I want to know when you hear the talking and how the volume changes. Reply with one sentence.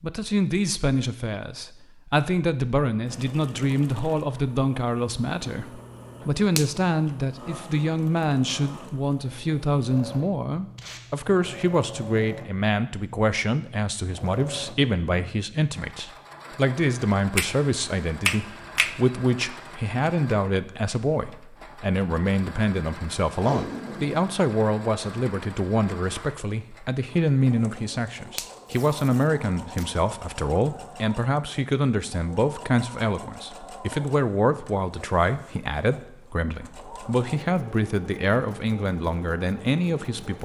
The talking can be heard from 0.0 to 40.3 s, at a steady volume.